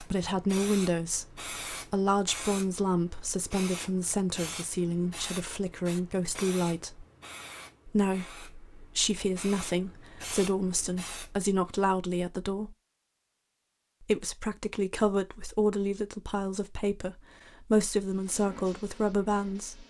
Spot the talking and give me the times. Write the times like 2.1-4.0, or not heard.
0.0-7.0, 7.8-12.8, 14.0-19.8.